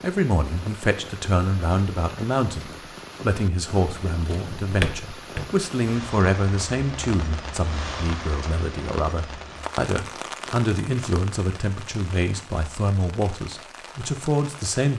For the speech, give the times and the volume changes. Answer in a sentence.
You can hear the speech from 0.0 to 14.9 s, at a steady volume.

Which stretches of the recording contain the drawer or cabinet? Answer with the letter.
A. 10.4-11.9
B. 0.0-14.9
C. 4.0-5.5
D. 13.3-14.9
C.